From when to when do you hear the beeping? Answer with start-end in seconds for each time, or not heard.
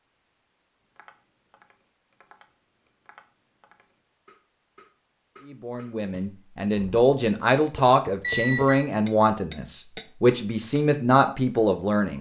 8.2-8.8.